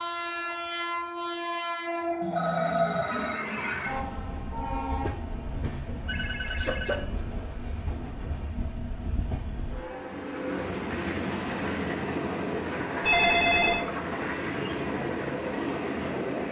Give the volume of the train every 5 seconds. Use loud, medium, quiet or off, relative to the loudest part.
loud, medium, loud, loud.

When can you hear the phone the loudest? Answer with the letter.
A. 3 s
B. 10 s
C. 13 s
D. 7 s
C.